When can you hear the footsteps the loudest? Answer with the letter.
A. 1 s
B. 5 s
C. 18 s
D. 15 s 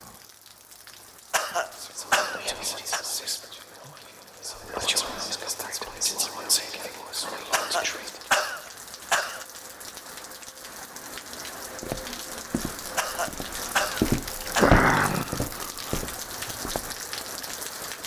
D.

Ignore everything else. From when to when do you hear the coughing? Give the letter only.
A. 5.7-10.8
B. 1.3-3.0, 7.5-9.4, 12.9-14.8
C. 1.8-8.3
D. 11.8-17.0
B.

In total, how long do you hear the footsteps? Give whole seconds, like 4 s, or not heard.
5 s.